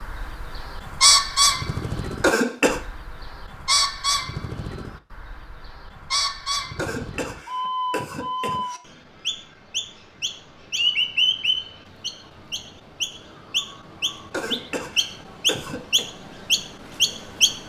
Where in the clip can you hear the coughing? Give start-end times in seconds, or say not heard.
2.2-2.8, 6.8-8.8, 14.3-16.1.